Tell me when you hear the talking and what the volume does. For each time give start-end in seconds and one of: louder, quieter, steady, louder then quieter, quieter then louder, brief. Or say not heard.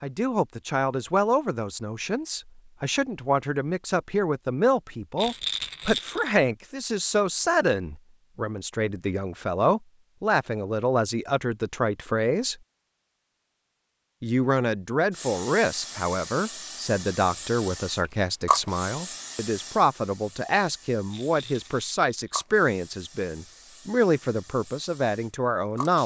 0.0-12.6 steady
14.2-26.0 steady.